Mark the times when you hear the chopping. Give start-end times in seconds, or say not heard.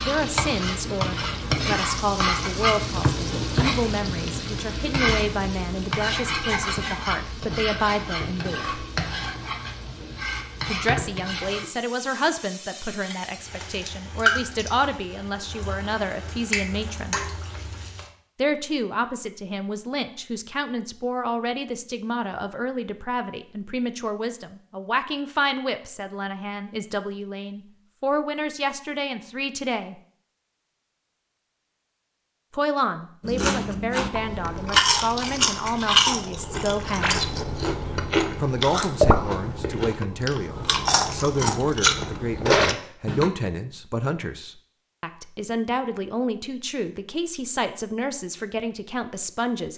not heard.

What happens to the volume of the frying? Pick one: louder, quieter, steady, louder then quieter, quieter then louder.
quieter then louder.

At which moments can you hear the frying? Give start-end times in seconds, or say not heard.
0.0-18.1.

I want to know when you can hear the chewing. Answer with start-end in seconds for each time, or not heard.
33.2-43.3.